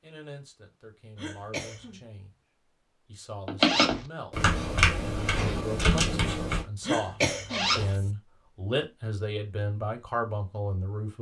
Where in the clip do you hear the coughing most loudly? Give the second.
7 s.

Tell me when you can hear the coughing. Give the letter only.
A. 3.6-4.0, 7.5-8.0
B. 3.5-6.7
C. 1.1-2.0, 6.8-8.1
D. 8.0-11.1
C.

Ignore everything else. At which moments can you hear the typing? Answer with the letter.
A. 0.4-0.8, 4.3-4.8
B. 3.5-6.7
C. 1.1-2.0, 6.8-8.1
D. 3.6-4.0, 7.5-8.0
B.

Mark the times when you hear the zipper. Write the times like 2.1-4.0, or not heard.
3.6-4.0, 7.5-8.0.